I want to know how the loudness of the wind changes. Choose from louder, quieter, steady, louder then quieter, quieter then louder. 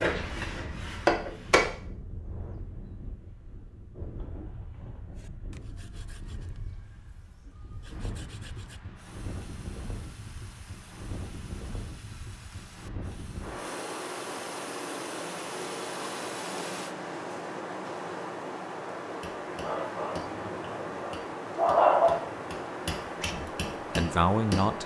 louder.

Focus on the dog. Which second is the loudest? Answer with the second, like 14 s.
22 s.